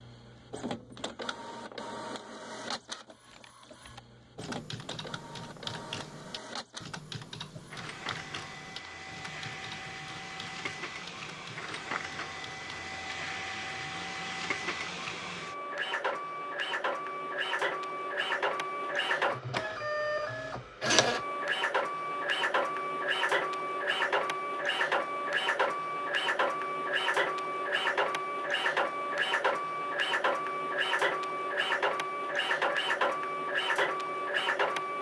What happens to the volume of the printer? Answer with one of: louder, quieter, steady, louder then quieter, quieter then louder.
louder.